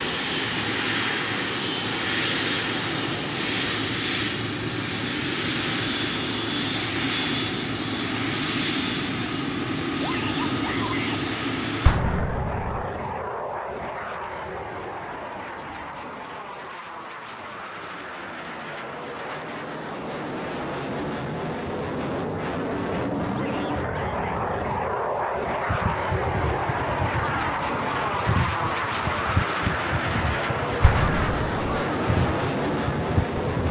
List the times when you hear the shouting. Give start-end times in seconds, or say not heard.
10.0-11.2, 23.3-24.4.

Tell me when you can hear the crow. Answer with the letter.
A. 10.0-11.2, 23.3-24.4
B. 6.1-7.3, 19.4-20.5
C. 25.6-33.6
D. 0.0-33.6
C.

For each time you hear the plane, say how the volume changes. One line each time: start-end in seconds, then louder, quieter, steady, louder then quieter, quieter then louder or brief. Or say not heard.
0.0-33.6 quieter then louder.